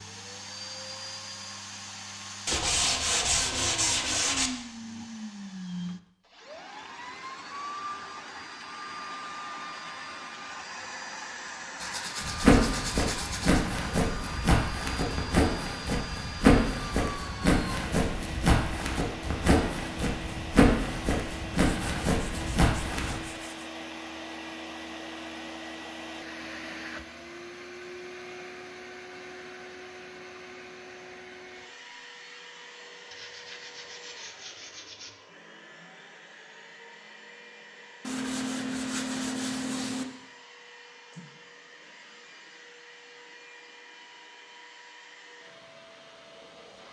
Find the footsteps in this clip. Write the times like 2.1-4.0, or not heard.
12.2-23.1.